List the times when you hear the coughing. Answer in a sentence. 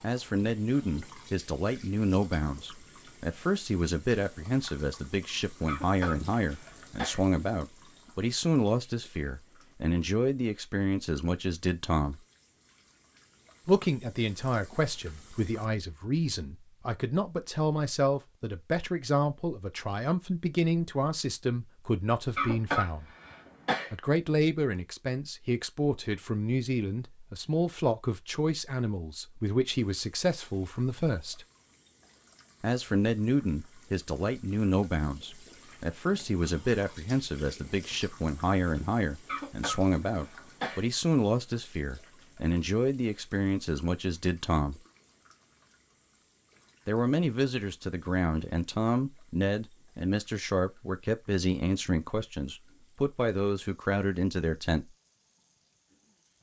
You can hear the coughing from 5.7 to 7.2 s, from 22.4 to 23.9 s and from 39.2 to 40.9 s.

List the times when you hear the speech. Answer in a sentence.
The speech can be heard from 0.0 to 12.2 s, from 13.7 to 23.1 s, from 23.9 to 31.4 s, from 32.6 to 44.8 s and from 46.9 to 54.9 s.